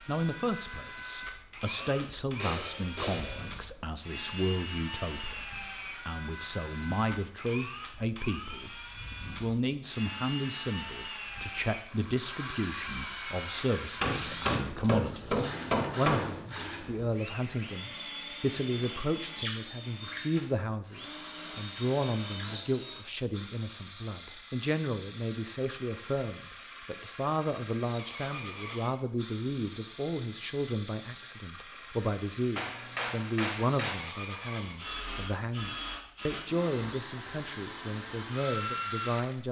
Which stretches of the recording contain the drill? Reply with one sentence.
The drill can be heard from 0.0 to 39.4 s.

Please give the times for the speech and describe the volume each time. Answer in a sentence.
You can hear the speech from 0.1 to 39.4 s, at a steady volume.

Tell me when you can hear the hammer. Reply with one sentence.
You can hear the hammer from 1.8 to 3.5 s, from 14.0 to 16.4 s and from 32.5 to 34.0 s.